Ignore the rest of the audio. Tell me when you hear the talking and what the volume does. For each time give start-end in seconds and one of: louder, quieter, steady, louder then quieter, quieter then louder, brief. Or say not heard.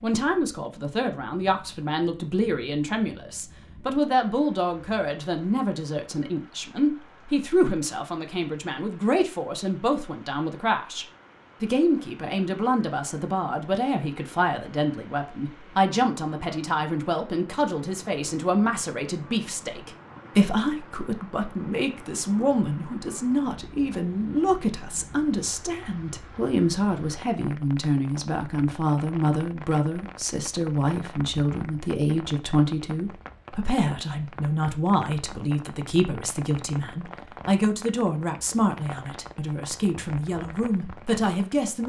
0.0-41.8 steady.